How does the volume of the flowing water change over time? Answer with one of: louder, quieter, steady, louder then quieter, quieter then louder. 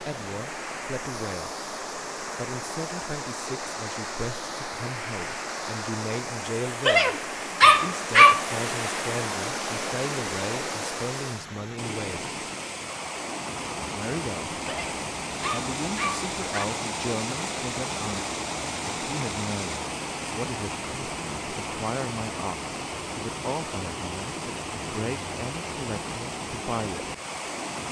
steady.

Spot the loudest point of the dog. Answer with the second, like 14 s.
8 s.